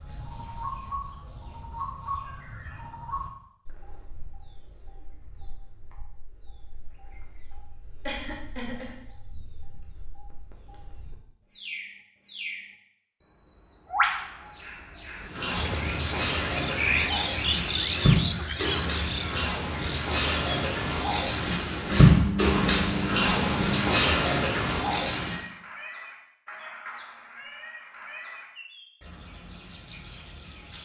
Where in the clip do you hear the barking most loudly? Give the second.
22 s.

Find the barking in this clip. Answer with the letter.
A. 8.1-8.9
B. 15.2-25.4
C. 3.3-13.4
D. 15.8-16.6
B.